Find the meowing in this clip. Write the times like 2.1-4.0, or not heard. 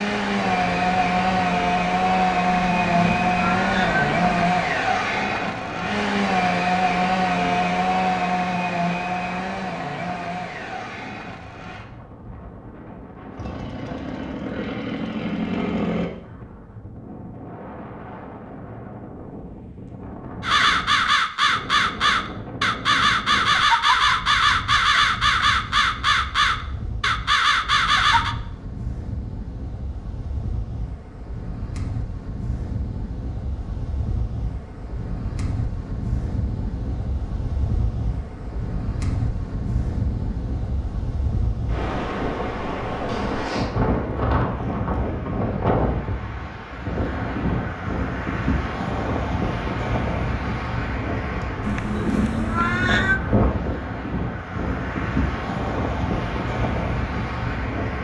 2.6-4.3, 51.6-53.2.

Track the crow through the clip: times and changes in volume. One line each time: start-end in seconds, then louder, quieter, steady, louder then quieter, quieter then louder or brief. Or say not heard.
20.4-28.4 steady.